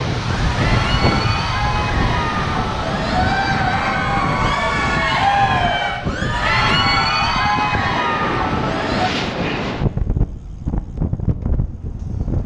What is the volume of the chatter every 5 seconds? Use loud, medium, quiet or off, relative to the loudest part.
loud, loud, off.